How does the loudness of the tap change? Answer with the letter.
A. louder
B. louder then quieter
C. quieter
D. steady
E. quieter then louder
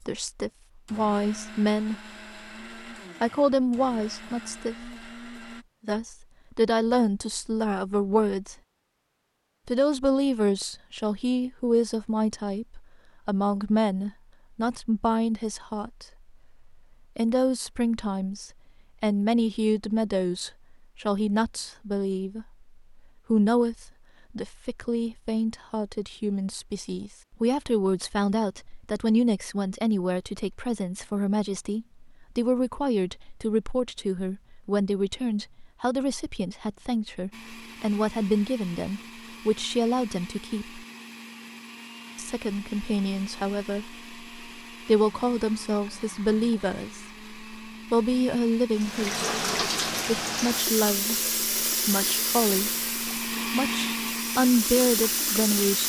E.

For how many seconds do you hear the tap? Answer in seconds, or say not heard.
7 s.